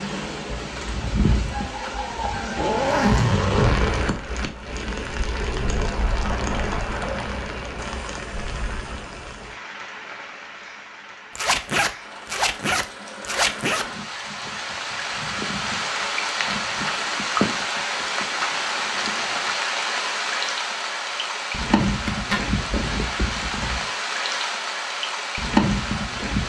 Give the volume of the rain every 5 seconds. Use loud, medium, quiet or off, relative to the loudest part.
medium, medium, quiet, loud, loud, loud.